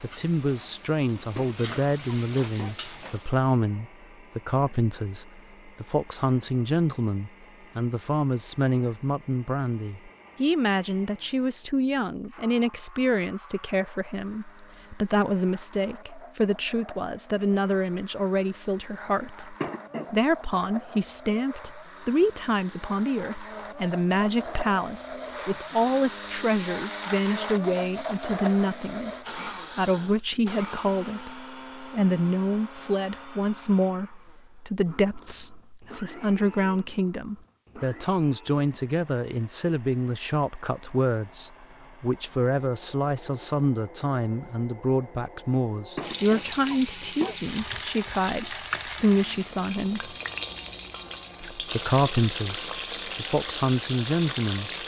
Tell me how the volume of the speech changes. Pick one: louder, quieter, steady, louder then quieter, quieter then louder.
steady.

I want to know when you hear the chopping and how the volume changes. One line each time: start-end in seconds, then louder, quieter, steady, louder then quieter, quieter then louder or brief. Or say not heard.
not heard.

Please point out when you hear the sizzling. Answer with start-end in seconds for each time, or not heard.
0.0-3.3, 46.0-54.8.